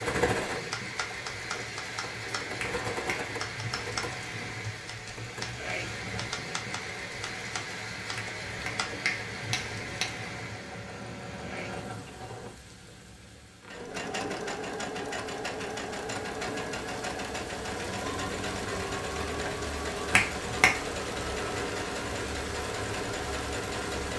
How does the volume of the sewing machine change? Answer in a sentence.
The loudness of the sewing machine goes down, then up.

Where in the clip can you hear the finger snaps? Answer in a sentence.
You can hear the finger snaps from 2.6 to 3.2 s, from 8.2 to 10.1 s and from 20.1 to 20.8 s.